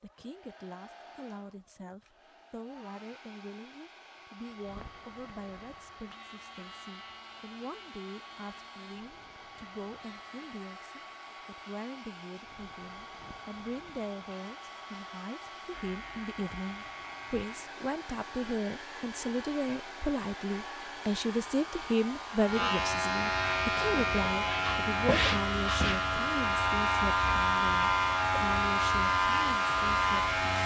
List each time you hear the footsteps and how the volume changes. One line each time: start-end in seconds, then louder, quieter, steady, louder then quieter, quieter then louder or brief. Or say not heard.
not heard.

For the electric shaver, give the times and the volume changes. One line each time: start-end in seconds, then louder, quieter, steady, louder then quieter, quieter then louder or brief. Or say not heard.
4.4-30.6 louder.